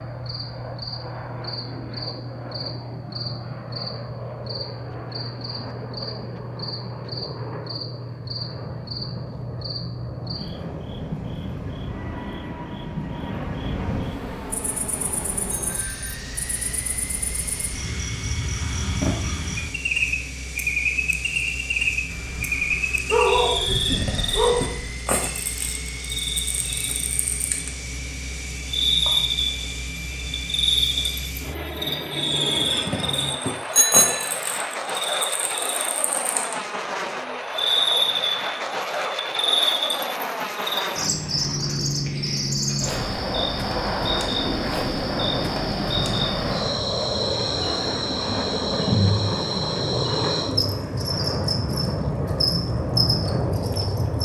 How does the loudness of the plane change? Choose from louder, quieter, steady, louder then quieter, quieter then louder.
louder.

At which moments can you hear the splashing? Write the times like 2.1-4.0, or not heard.
not heard.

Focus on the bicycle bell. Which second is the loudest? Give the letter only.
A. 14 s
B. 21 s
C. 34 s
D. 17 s
C.